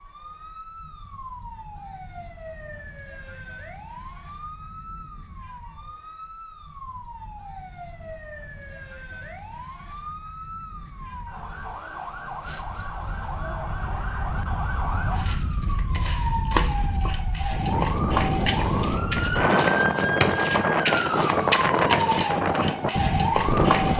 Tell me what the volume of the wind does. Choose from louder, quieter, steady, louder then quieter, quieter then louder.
louder.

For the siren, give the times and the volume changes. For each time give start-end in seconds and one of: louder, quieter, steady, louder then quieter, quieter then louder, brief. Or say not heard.
0.0-23.9 louder.